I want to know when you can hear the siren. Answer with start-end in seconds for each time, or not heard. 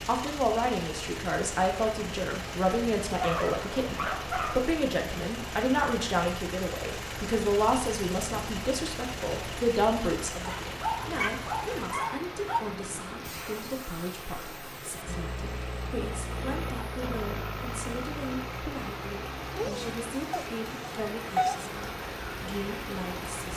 not heard.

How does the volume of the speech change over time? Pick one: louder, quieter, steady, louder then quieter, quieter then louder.
quieter.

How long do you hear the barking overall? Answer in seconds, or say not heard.
6 s.